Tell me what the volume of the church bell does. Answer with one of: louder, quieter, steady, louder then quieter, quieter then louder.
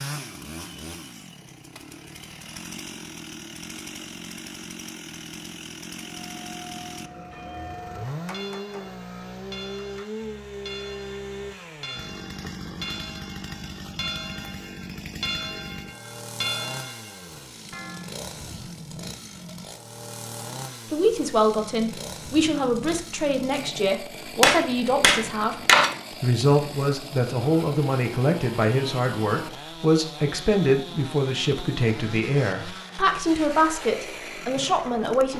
louder.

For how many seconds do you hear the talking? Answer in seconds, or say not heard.
14 s.